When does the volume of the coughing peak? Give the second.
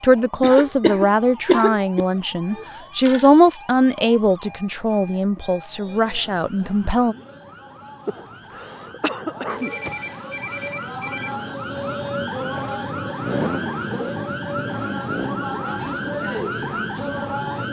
2 s.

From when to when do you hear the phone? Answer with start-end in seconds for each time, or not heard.
2.5-3.3, 9.4-11.3.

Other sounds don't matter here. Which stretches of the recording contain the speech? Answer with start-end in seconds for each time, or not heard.
0.0-7.2.